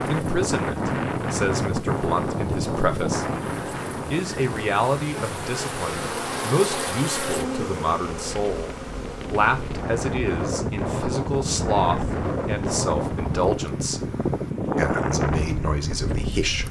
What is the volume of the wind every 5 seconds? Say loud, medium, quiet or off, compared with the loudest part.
loud, medium, loud, loud.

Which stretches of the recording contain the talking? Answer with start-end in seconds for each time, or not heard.
0.1-3.2, 4.1-14.0, 14.8-16.6.